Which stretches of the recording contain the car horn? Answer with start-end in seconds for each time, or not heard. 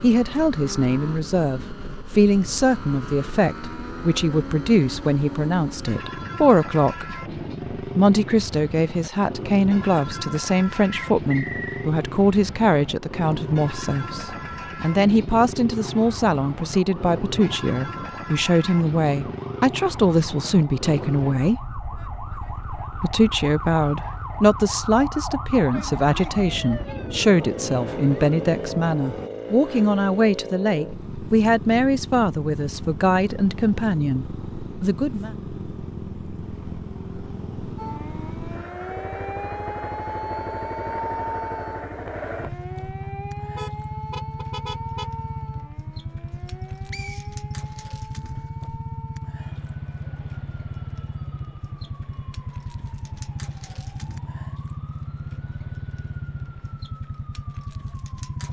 43.5-45.2.